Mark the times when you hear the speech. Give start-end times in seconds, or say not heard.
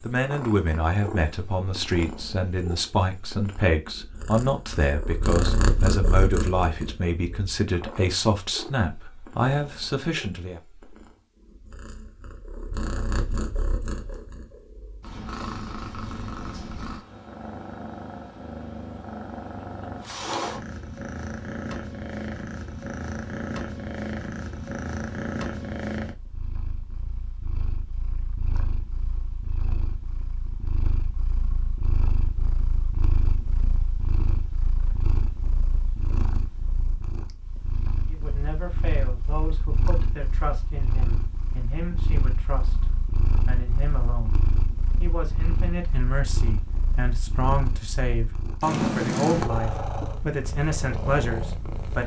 0.1-10.6, 38.0-44.4, 45.0-52.0.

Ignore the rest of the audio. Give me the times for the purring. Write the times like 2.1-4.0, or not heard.
0.0-52.0.